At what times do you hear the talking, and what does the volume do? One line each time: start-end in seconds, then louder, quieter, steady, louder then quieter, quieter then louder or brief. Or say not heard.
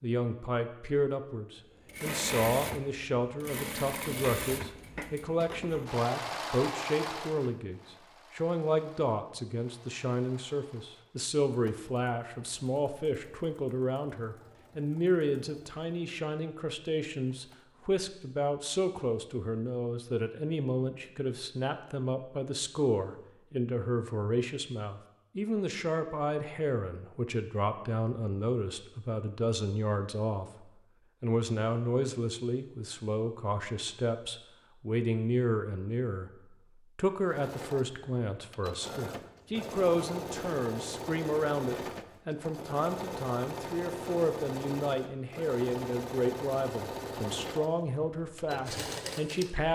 0.0-49.7 steady.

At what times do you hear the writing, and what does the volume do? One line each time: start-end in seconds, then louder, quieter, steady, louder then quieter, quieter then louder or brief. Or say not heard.
not heard.